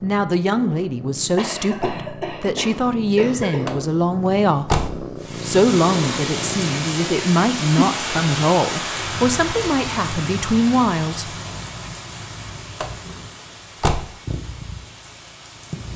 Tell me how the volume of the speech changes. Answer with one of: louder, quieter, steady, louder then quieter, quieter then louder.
steady.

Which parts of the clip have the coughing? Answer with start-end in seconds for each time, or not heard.
1.4-3.6.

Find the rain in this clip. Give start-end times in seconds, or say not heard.
5.2-15.9.